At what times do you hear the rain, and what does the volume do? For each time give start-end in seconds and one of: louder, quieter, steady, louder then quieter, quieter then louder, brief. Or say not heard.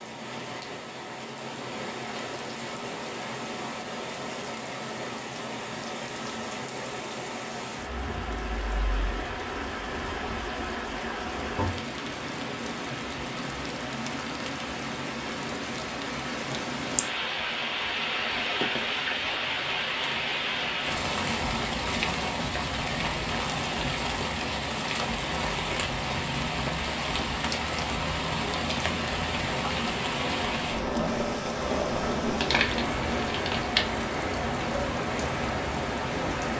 0.0-36.5 louder.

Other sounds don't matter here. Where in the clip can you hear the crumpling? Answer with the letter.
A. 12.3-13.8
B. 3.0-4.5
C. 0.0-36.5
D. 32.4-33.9
D.